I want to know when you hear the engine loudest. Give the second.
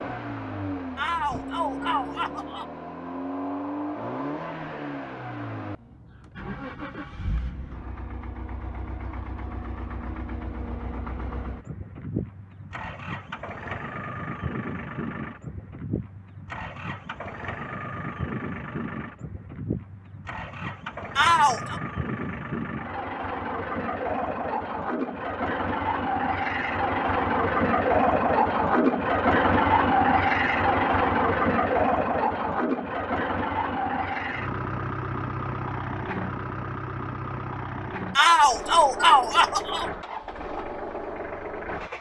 30 s.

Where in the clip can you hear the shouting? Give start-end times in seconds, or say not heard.
0.9-2.6, 21.1-21.8, 38.1-39.9.